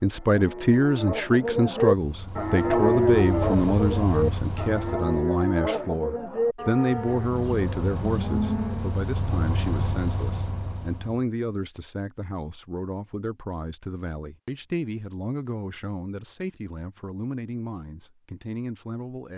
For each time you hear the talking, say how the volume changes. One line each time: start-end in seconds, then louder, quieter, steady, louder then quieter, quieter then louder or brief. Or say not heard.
0.0-19.3 quieter.